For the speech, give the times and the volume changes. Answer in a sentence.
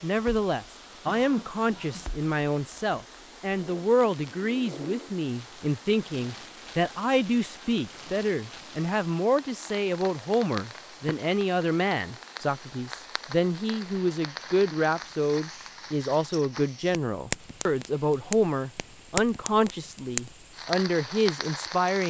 The speech can be heard from 0.0 to 22.0 s, at a steady volume.